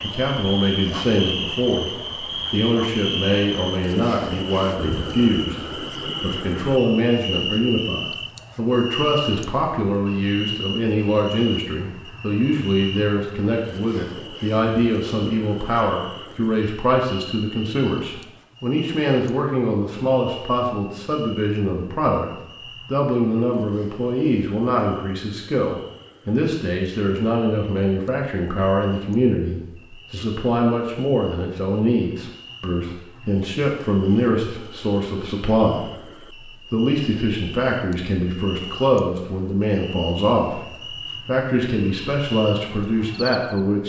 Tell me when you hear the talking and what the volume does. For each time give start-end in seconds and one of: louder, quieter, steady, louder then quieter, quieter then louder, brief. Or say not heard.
0.0-43.8 steady.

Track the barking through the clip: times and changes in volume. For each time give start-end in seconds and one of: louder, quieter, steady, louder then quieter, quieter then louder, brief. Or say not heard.
not heard.